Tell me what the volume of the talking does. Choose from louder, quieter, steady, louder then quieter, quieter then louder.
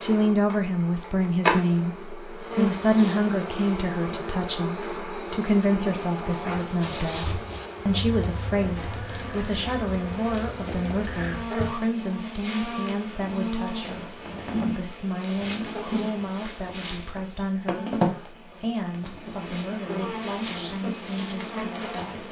quieter.